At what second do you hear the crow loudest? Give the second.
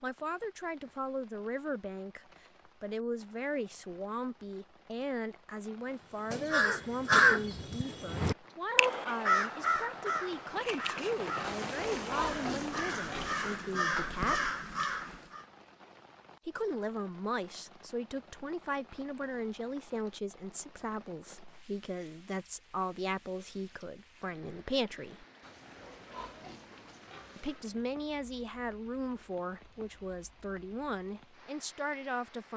7 s.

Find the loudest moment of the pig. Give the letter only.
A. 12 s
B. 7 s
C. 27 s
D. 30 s
A.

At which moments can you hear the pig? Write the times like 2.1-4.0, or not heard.
11.4-13.6, 25.4-27.6.